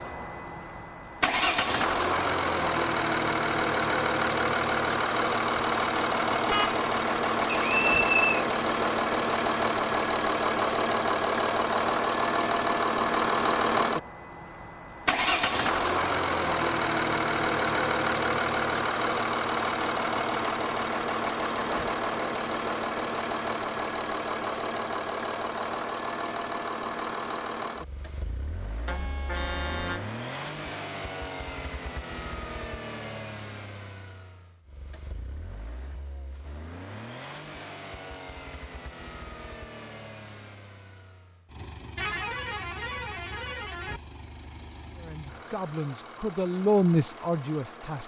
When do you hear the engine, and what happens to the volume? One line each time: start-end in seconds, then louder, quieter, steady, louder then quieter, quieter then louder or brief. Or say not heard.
0.0-48.0 quieter.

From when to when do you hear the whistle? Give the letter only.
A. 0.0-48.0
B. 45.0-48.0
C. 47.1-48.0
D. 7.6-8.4
D.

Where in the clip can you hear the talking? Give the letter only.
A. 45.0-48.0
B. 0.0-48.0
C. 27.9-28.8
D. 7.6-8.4
A.